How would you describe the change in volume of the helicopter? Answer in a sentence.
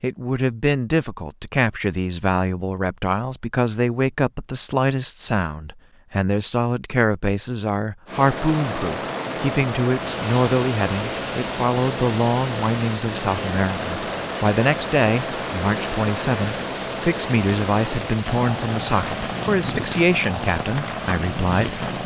The loudness of the helicopter stays about the same.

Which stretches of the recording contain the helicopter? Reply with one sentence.
The helicopter can be heard from 8.1 to 22.0 s.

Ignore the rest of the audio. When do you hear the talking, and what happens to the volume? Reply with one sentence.
You can hear the talking from 0.0 to 21.9 s, at a steady volume.